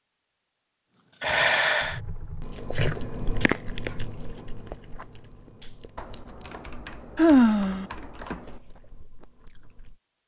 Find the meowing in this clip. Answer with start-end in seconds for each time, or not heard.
not heard.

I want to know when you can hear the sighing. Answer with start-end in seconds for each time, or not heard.
1.2-2.0, 7.2-7.8.